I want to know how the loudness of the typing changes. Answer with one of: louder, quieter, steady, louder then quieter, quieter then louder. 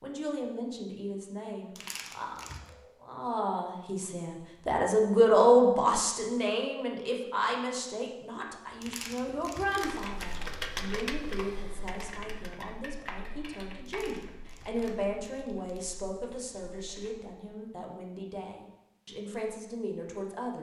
quieter.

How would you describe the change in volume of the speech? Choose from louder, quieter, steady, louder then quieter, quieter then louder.
louder then quieter.